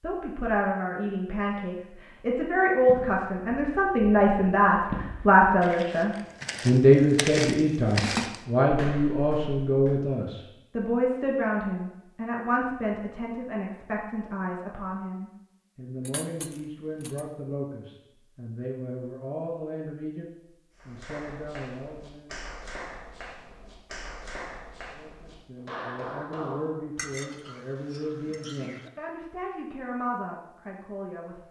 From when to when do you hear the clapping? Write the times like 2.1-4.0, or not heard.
20.8-26.9.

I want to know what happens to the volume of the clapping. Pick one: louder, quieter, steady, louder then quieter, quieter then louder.
louder.